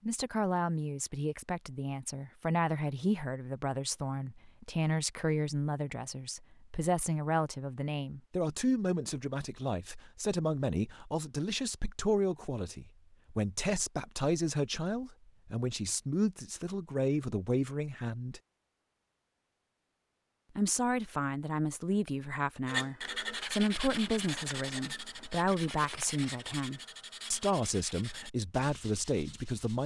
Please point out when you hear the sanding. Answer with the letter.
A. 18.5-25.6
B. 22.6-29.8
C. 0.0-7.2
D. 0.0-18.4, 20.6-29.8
B.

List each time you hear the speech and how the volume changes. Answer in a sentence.
You can hear the speech from 0.0 to 18.4 s, at a steady volume; and from 20.6 to 29.8 s, at a steady volume.